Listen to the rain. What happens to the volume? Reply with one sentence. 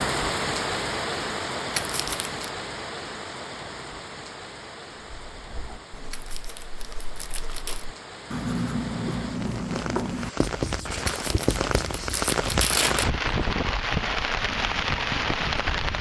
The volume of the rain goes down, then up.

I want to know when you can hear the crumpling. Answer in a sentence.
The crumpling can be heard from 1.8 to 2.4 s, from 6.1 to 7.8 s and from 11.1 to 13.1 s.